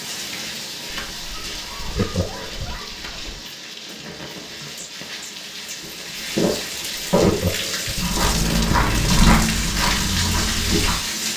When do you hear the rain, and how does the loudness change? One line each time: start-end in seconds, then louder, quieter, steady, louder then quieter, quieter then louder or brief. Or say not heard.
0.0-11.3 louder.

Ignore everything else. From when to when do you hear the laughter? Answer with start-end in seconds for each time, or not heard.
1.9-2.8, 7.1-8.0.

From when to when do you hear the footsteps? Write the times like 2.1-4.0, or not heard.
5.8-11.0.